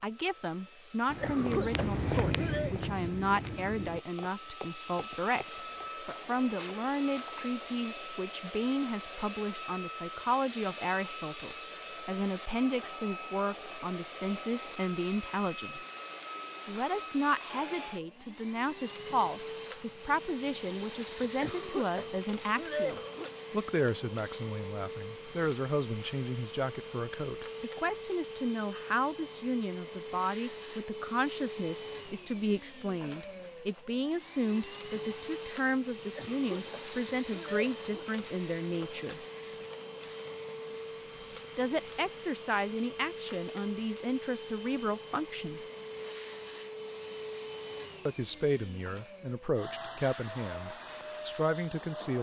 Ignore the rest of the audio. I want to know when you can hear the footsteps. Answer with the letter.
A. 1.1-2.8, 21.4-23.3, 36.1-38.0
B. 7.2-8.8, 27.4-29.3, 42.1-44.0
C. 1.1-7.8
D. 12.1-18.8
C.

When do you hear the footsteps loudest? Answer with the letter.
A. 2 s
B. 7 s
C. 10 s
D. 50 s
A.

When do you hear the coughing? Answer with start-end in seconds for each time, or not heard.
1.1-2.8, 21.4-23.3, 36.1-38.0.